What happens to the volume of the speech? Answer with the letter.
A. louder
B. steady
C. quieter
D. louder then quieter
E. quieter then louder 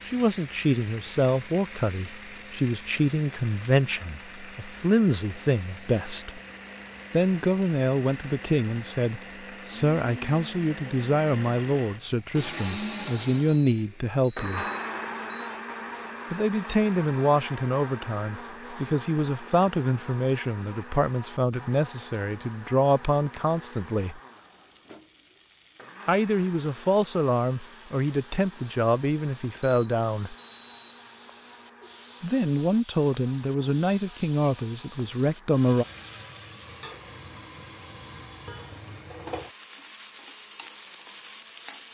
B.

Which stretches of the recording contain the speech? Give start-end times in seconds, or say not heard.
0.1-6.4, 7.1-14.7, 16.3-24.2, 26.1-30.4, 32.2-35.9.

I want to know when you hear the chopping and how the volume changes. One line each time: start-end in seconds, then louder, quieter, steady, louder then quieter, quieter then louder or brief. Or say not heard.
not heard.